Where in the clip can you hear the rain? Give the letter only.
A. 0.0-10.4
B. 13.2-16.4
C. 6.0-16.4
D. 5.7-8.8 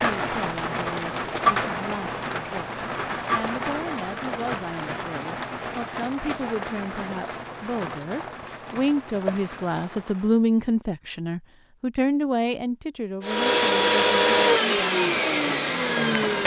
A.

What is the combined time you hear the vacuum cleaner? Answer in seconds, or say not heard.
3 s.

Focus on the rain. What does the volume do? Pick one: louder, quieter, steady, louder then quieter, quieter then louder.
quieter.